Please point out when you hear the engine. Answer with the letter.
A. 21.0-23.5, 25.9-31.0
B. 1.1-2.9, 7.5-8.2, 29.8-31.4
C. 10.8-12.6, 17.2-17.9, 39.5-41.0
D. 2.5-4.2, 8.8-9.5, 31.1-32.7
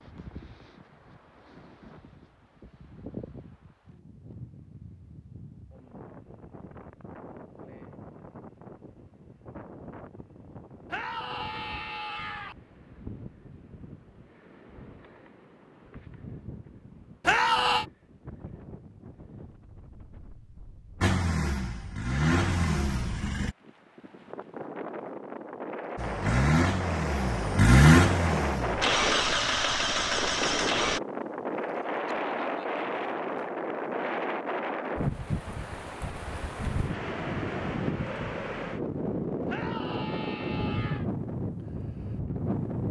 A.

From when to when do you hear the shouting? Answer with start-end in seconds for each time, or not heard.
10.8-12.6, 17.2-17.9, 39.5-41.0.